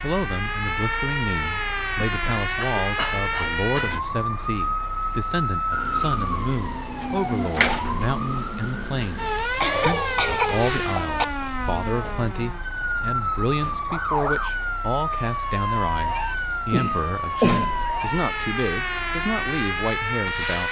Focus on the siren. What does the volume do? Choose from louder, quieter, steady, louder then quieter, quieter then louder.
steady.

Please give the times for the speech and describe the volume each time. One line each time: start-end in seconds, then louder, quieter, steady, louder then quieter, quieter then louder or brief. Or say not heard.
0.0-20.6 steady.